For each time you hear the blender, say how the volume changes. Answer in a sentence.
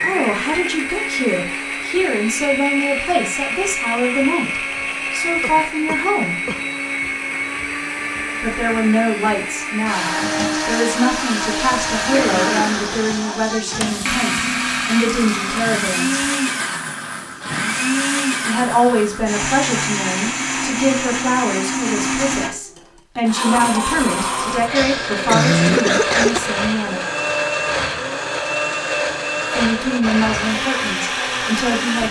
The blender can be heard from 0.0 to 32.0 s, at a steady volume.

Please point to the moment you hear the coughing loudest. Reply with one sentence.
The loudest moment of the coughing is at 26 seconds.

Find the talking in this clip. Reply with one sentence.
The talking can be heard from 0.0 to 6.5 s, from 8.4 to 16.2 s, from 18.4 to 27.1 s and from 29.5 to 32.0 s.